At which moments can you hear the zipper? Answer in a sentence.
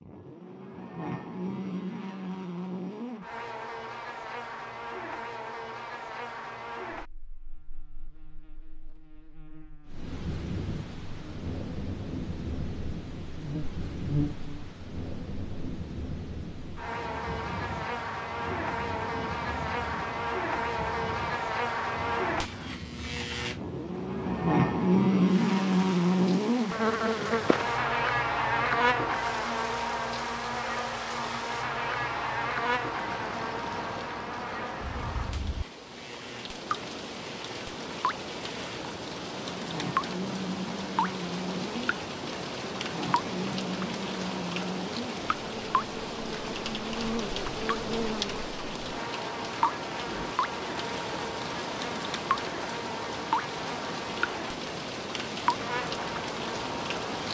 The zipper can't be heard in this clip.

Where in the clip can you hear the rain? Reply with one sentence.
The rain can be heard from 9.8 to 57.2 s.